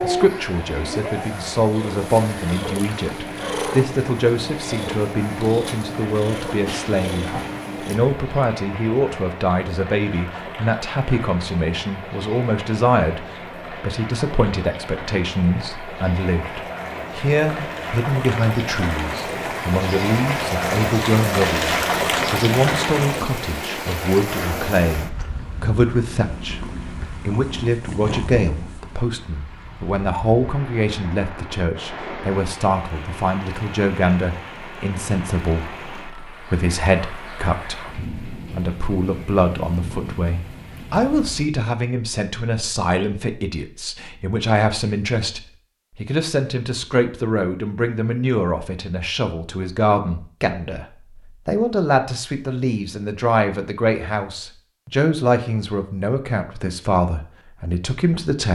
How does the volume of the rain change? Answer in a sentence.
The loudness of the rain goes up, then down.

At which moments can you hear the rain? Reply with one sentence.
The rain can be heard from 0.0 to 41.5 s.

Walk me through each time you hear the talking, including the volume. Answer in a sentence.
You can hear the talking from 0.0 to 58.5 s, at a steady volume.